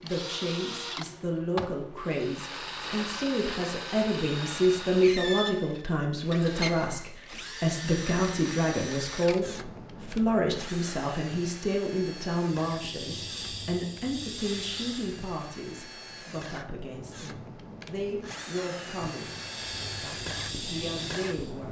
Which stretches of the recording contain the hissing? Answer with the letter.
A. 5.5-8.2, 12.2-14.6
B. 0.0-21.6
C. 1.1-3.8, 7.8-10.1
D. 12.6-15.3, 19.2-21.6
D.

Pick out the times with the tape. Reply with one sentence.
You can't hear the tape here.